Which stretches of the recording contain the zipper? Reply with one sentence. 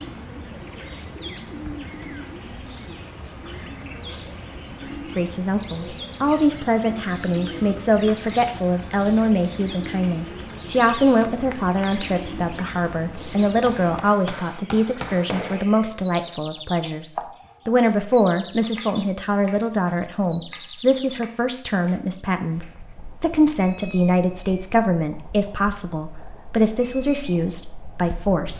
The zipper can't be heard in this clip.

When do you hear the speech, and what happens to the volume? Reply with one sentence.
You can hear the speech from 5.2 to 28.5 s, at a steady volume.